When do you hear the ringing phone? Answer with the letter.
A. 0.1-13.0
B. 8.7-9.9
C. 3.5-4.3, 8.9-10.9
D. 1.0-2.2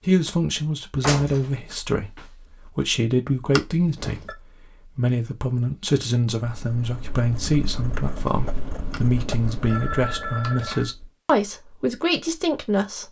C.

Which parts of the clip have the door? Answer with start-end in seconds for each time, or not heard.
1.0-2.2.